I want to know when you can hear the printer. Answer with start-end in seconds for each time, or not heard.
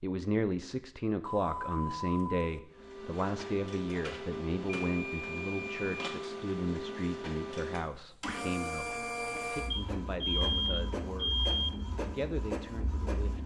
2.7-13.4.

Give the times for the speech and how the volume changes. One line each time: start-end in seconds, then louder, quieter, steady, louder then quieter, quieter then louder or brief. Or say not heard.
0.0-13.4 quieter.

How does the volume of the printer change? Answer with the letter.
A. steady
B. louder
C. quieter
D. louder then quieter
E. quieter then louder
A.